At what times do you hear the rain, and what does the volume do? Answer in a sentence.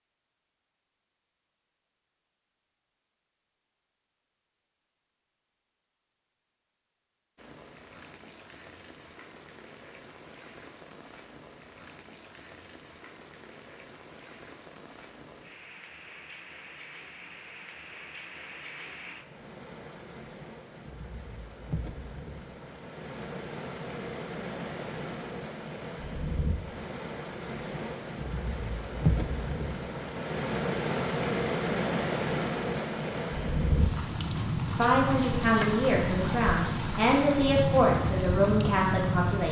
The rain can be heard from 7.3 to 39.4 s, getting louder.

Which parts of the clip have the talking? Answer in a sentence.
The talking can be heard from 34.8 to 39.4 s.